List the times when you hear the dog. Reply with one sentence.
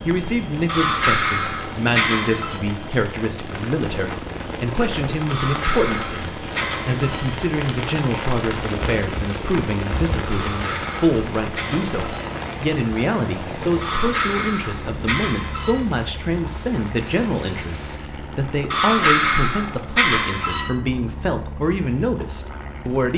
The dog can be heard from 0.7 to 2.6 s, from 5.2 to 7.3 s, from 10.2 to 12.3 s, from 13.8 to 15.8 s and from 18.7 to 20.7 s.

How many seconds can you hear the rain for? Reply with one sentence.
The rain can be heard for 18 seconds in total.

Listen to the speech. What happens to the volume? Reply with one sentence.
The loudness of the speech stays about the same.